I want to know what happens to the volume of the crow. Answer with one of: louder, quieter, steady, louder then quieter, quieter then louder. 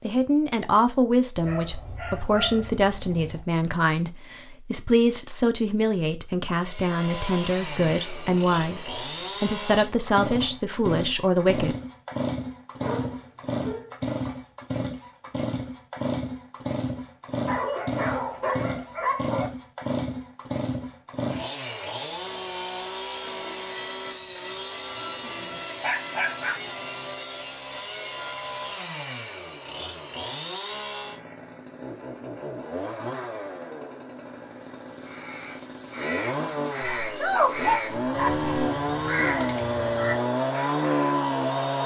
louder then quieter.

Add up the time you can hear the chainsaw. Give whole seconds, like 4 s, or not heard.
35 s.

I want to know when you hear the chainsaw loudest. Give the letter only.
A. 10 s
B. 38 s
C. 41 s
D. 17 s
C.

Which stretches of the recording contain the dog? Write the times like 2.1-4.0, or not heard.
1.4-3.4, 12.8-13.9, 17.4-19.5, 25.2-27.1, 36.8-38.5.